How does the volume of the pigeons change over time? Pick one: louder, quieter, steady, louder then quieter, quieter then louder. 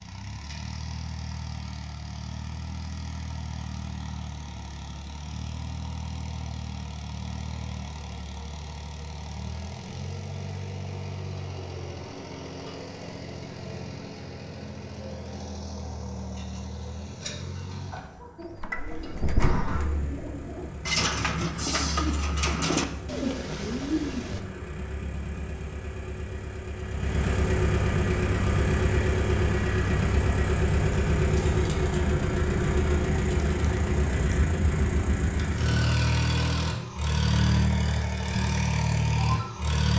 quieter then louder.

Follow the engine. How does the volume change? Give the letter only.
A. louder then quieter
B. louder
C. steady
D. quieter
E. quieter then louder
B.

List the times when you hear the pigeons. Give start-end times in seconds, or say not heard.
18.4-24.4.